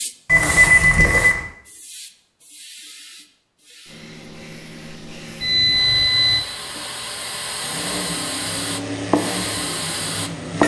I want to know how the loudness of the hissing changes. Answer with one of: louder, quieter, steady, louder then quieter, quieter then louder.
quieter then louder.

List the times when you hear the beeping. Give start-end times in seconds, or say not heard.
0.2-1.4, 5.4-6.5.